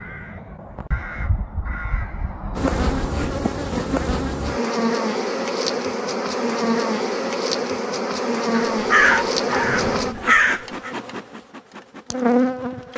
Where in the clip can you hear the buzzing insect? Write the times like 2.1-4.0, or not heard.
2.5-12.9.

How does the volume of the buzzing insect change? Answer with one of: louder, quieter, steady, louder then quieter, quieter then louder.
steady.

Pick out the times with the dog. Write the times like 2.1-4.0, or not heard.
9.0-10.2.